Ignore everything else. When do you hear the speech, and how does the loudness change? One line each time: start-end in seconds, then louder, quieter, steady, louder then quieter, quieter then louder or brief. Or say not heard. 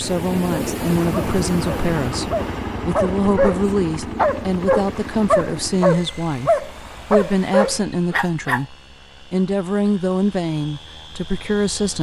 0.0-11.9 steady.